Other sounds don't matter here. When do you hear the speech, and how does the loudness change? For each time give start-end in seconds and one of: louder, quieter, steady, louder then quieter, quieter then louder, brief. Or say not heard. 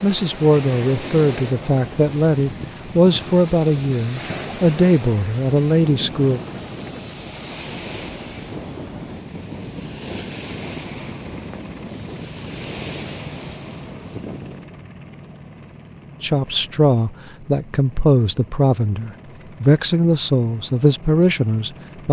0.0-6.4 steady
16.2-22.0 steady.